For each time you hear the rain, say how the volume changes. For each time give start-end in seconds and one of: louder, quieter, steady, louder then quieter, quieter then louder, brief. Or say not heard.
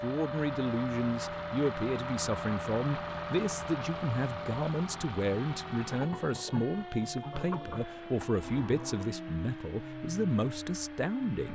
not heard.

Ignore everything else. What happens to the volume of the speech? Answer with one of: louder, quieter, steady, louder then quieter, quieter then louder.
steady.